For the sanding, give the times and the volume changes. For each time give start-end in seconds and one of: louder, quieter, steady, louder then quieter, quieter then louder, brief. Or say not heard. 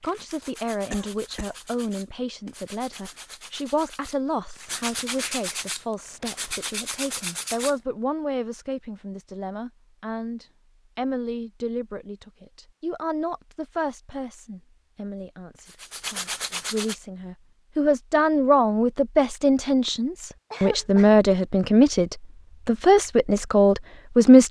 0.0-7.8 louder
15.6-16.9 brief.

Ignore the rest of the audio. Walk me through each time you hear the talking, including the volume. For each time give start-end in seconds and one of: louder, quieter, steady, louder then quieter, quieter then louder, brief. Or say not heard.
0.0-24.4 louder.